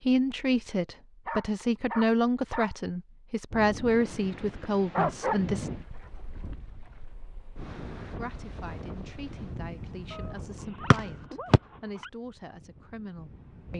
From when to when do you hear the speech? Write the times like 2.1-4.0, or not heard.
0.0-5.7, 8.2-13.7.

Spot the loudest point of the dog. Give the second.
5 s.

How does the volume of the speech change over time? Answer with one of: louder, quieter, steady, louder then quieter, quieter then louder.
quieter.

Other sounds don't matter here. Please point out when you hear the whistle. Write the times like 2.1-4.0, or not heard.
10.9-11.6.